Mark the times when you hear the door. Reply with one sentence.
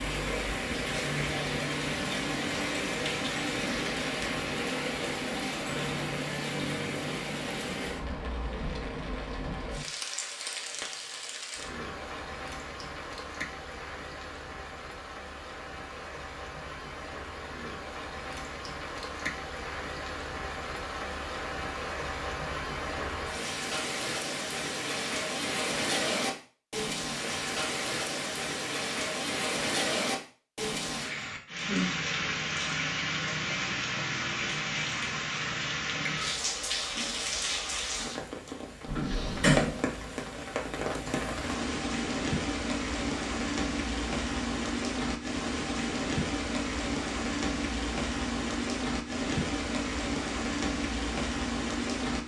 You can hear the door from 38.9 to 39.8 s.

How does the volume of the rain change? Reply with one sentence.
The volume of the rain goes down, then up.